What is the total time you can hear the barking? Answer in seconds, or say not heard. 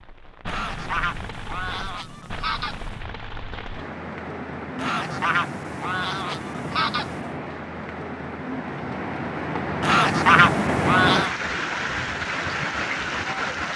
not heard.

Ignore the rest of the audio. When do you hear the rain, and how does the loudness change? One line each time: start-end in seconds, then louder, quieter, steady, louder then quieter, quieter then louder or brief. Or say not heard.
0.0-13.7 louder.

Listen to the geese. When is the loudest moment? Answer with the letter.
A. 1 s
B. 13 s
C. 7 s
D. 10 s
D.